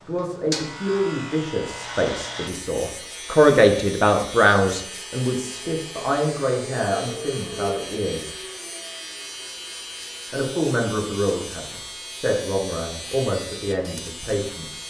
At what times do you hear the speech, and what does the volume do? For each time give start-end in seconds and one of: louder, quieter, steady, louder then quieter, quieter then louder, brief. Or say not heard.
0.0-8.3 louder then quieter
10.3-14.8 quieter then louder.